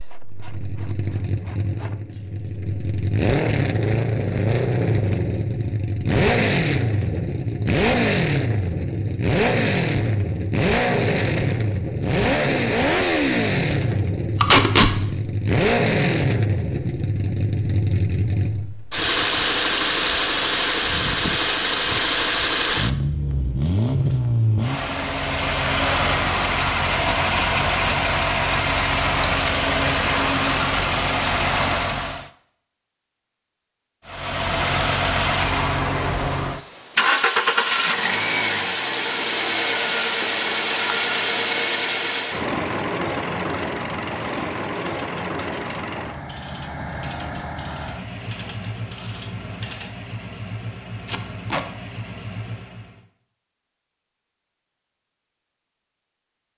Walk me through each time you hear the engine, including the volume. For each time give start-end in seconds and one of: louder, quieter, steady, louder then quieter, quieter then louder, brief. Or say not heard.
0.1-32.3 steady
34.0-53.0 quieter.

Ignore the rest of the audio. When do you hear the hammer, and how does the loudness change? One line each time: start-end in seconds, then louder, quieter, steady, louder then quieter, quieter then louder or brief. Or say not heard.
not heard.